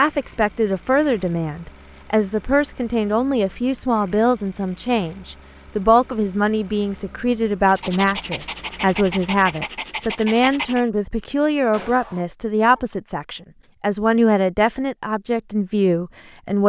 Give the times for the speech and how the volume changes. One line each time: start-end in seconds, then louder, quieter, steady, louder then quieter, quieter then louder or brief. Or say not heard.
0.0-16.6 steady.